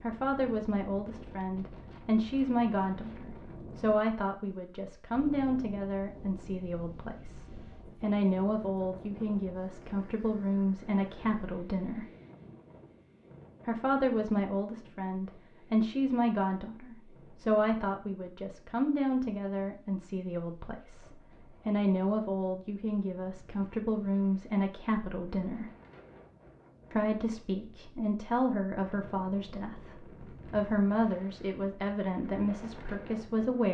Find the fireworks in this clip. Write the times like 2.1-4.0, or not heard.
not heard.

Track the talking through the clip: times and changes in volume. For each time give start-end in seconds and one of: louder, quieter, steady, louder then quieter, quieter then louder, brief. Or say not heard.
0.0-12.1 steady
13.7-25.7 steady
26.9-33.6 steady.